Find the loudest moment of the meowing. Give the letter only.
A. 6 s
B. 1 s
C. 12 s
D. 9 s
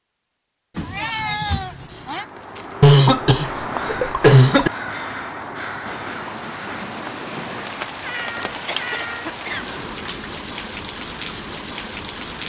B.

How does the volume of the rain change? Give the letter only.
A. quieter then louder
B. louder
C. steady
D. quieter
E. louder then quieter
C.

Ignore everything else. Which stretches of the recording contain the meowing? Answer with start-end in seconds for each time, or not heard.
0.8-2.2, 8.0-9.2.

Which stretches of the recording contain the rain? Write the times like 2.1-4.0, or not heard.
5.8-12.4.